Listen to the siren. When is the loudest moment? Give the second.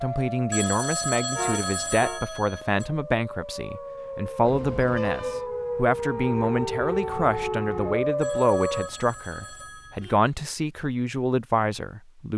8 s.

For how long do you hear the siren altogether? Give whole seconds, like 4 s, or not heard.
9 s.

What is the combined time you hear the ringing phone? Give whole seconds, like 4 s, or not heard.
4 s.